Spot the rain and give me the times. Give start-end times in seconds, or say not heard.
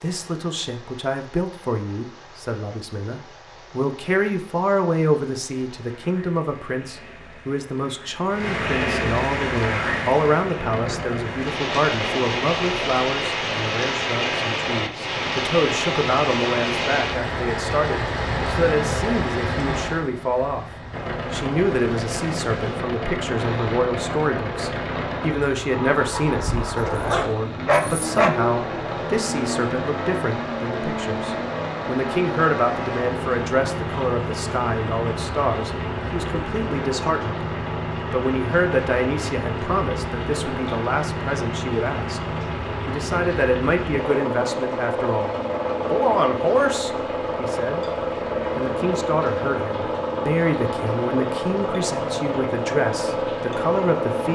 0.0-54.3.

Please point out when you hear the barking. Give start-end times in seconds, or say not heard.
26.8-28.3.